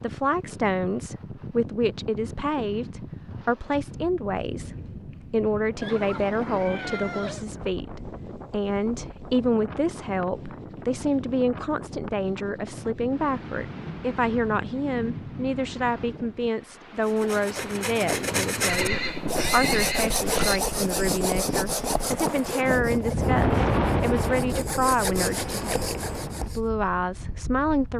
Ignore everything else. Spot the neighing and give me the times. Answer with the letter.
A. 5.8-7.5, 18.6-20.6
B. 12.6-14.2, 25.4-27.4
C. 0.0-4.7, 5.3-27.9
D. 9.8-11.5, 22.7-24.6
A.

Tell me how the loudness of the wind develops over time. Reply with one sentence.
The loudness of the wind goes up.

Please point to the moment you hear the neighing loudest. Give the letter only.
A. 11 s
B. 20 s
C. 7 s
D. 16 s
B.